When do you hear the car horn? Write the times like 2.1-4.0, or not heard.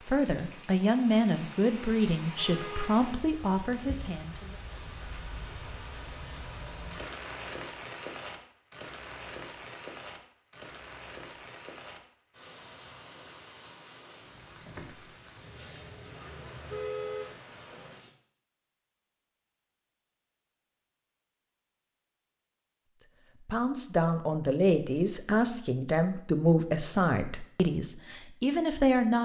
2.4-3.0, 15.3-17.4.